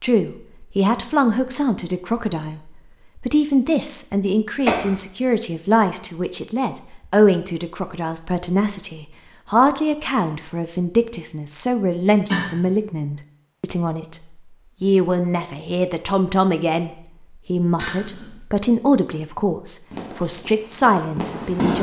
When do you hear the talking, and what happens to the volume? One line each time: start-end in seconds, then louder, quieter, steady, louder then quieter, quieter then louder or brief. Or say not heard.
0.0-14.2 steady
14.8-21.7 steady.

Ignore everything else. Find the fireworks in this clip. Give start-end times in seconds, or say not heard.
19.9-21.7.